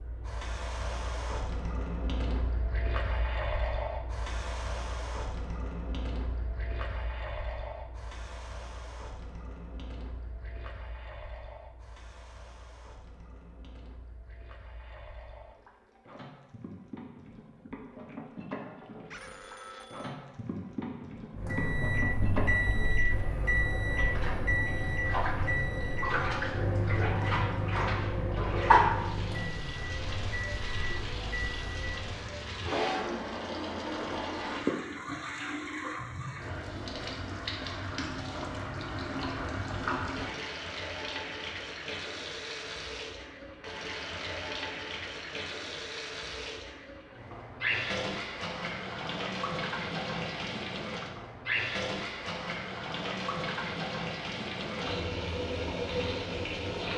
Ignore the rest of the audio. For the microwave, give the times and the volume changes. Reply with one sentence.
The microwave can be heard from 21.4 to 32.0 s, getting quieter.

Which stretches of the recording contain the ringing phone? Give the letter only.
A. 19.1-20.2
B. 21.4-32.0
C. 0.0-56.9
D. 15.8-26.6
A.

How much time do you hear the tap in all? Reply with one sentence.
You can hear the tap for 57 seconds altogether.